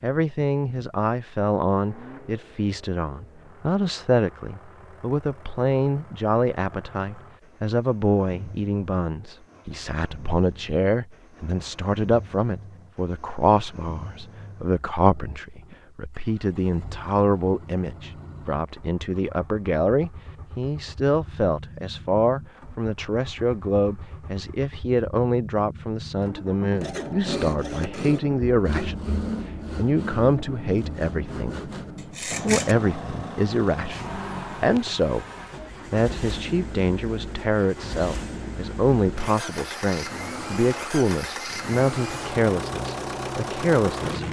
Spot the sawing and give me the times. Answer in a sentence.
You can hear the sawing from 26.8 to 32.8 s.